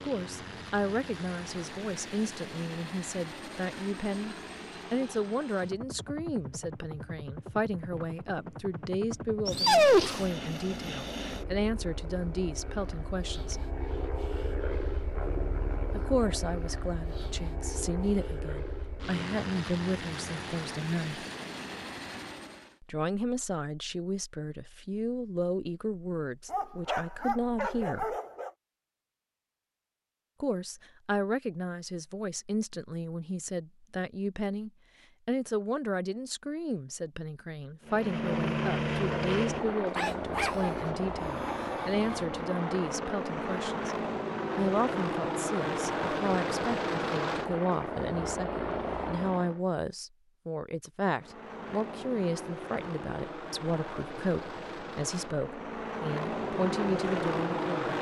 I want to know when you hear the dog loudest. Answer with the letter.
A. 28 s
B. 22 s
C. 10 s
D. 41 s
C.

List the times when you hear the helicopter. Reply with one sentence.
You can hear the helicopter from 0.0 to 22.8 s, from 37.9 to 49.6 s and from 51.1 to 57.9 s.